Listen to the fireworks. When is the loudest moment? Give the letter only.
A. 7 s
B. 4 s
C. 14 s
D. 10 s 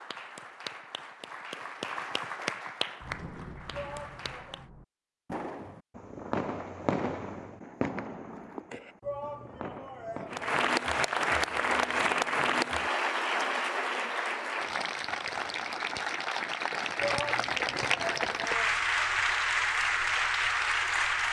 A.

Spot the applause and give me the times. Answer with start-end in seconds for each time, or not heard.
0.0-4.7, 10.3-21.2.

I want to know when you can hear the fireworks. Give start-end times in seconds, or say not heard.
3.0-10.6.